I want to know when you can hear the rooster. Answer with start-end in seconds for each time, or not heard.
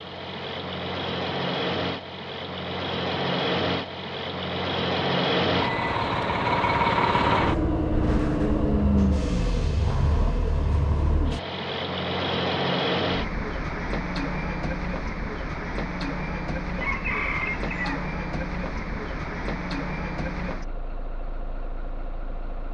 16.8-18.1.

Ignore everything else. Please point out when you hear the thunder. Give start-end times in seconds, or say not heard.
not heard.